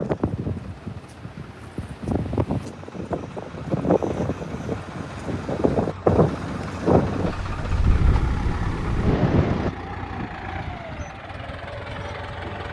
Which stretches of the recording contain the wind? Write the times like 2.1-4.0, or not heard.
0.0-9.7.